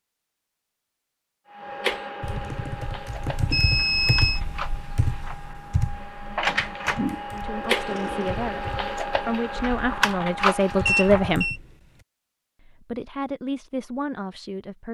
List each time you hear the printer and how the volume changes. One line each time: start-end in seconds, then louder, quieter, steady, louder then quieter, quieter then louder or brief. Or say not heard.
1.6-11.4 louder.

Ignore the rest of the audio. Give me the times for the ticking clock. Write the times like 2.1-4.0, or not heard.
not heard.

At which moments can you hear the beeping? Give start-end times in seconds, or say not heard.
3.5-4.4, 10.6-11.6.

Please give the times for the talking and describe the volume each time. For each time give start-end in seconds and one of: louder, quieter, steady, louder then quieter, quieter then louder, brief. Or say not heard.
7.3-11.5 louder
12.6-14.8 brief.